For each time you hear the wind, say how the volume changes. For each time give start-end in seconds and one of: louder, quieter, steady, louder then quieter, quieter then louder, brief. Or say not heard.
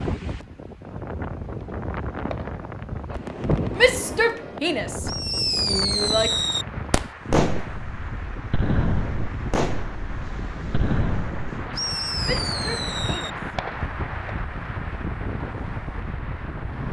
0.0-16.8 steady.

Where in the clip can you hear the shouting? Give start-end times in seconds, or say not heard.
3.8-6.3, 12.2-13.6.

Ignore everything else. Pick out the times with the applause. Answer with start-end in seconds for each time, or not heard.
6.2-16.8.